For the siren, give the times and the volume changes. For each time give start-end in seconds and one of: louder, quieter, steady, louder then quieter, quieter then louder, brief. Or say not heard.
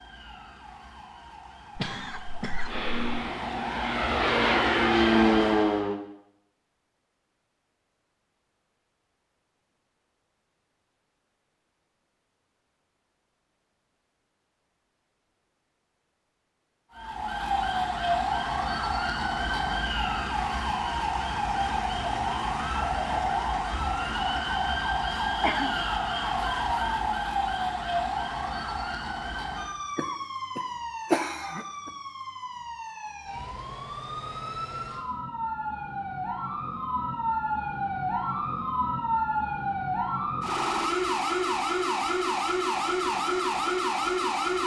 0.0-5.8 louder
16.9-44.6 quieter then louder.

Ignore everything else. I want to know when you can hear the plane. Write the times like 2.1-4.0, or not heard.
2.6-6.0.